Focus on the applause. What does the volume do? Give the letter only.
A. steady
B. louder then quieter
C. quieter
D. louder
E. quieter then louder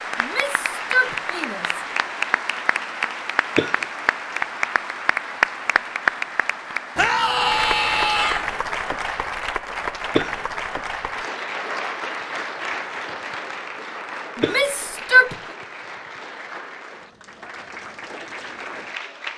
C.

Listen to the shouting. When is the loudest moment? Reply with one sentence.
The volume of the shouting peaks at 15 seconds.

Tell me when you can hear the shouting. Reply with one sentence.
You can hear the shouting from 0.1 to 1.8 s, from 7.0 to 8.4 s and from 14.3 to 15.3 s.